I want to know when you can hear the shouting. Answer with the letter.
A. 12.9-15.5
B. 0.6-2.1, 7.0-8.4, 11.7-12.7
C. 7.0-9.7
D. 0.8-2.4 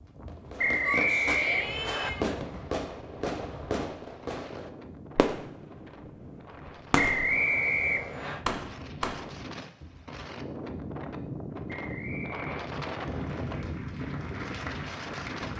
D.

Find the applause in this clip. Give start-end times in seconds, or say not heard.
12.9-15.5.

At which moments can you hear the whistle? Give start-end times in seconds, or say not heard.
0.6-2.1, 7.0-8.4, 11.7-12.7.